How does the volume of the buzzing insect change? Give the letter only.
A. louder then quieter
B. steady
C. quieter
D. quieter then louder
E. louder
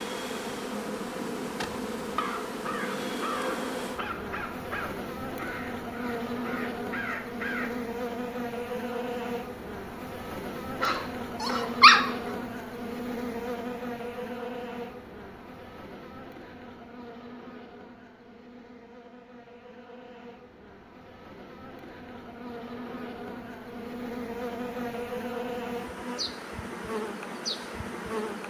D.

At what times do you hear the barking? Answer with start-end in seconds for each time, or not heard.
10.8-12.1.